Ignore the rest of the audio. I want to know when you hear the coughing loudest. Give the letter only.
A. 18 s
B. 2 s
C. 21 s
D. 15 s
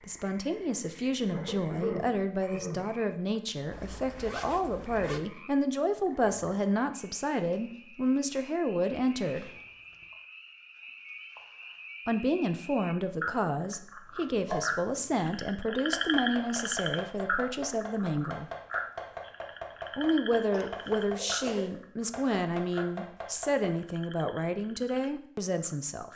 B.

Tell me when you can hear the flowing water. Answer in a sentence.
The flowing water can't be heard in this clip.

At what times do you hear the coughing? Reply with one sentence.
The coughing can be heard from 1.3 to 2.9 s and from 20.5 to 21.8 s.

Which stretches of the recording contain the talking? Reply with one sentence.
You can hear the talking from 0.1 to 9.5 s, from 12.1 to 18.5 s and from 19.9 to 26.1 s.